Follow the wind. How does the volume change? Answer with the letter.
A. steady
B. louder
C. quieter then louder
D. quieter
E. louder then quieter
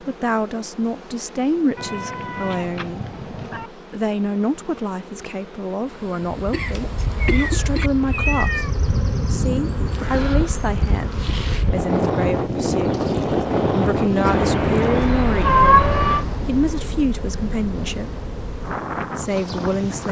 E.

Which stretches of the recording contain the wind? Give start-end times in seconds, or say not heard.
6.3-20.0.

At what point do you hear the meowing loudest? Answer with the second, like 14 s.
16 s.